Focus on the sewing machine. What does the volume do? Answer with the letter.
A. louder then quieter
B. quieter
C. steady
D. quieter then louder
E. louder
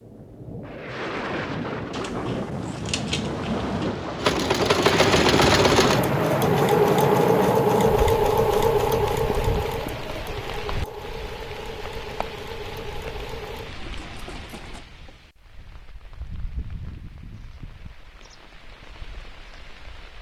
B.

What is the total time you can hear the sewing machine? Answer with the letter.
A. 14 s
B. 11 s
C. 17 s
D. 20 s
B.